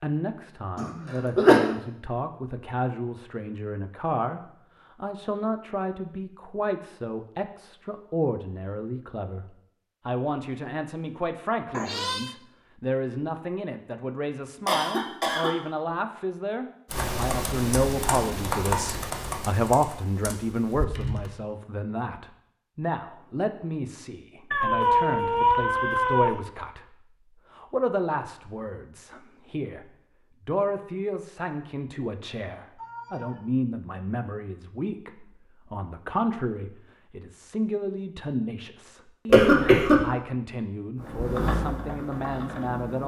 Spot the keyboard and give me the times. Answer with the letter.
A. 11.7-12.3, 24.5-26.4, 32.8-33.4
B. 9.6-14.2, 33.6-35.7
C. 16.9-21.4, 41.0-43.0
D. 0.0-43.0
C.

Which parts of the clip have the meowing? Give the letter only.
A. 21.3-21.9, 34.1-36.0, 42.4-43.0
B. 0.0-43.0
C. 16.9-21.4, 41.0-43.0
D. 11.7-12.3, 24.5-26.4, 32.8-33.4
D.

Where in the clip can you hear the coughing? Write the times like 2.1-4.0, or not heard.
0.8-1.6, 14.7-15.6, 39.3-40.0.